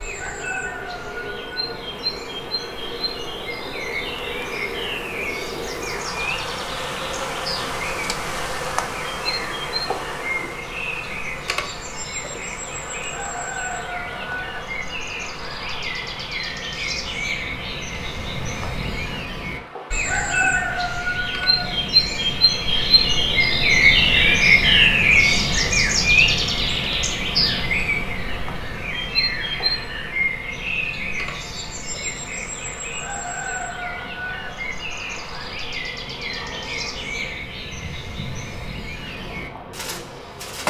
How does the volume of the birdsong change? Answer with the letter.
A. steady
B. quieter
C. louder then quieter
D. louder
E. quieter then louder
C.